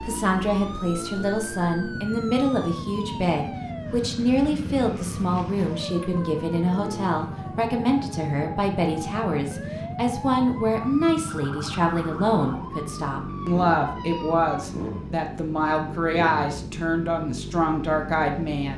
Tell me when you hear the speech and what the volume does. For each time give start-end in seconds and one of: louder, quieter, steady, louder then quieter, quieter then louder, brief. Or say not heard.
0.0-18.7 steady.